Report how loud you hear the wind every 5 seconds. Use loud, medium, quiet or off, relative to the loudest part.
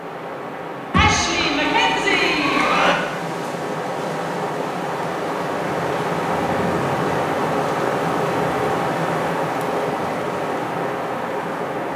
medium, loud, loud.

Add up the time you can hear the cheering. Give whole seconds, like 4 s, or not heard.
2 s.